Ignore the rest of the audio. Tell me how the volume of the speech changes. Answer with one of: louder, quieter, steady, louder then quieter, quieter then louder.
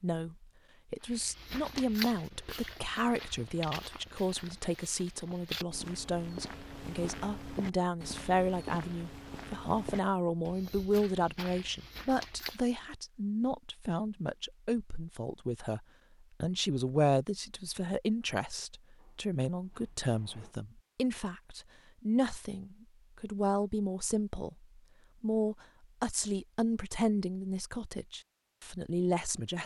steady.